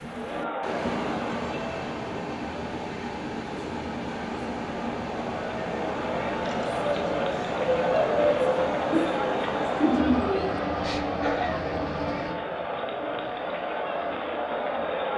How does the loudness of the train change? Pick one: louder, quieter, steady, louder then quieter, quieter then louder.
quieter.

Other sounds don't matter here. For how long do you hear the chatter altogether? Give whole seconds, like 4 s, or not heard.
15 s.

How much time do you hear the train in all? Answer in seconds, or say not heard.
15 s.